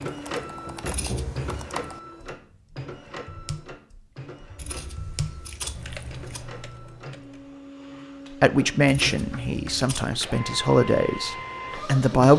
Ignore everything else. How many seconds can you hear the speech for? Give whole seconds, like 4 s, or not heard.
4 s.